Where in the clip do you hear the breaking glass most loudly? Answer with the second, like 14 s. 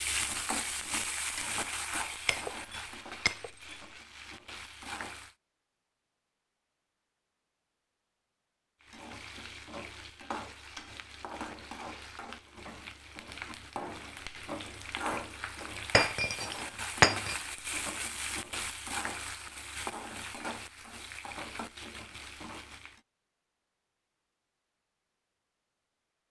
17 s.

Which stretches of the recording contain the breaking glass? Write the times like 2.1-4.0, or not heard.
2.2-3.8, 15.9-17.4.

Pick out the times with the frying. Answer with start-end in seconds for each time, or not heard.
0.0-5.3, 8.8-23.0.